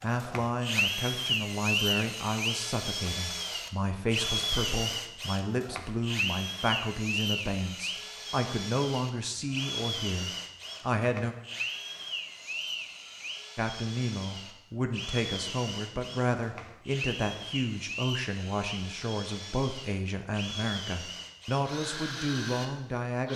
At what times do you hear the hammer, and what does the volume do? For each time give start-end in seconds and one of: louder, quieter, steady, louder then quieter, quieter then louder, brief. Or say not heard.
not heard.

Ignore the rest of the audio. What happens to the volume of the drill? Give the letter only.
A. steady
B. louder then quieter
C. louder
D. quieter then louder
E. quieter
E.